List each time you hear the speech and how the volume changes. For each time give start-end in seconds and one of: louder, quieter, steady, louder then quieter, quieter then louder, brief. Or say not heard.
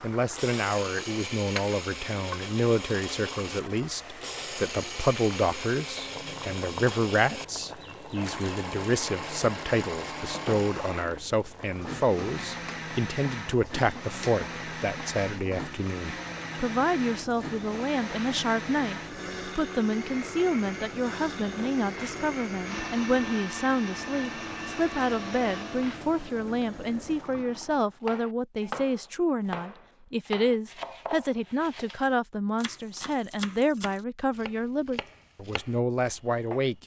0.0-36.8 steady.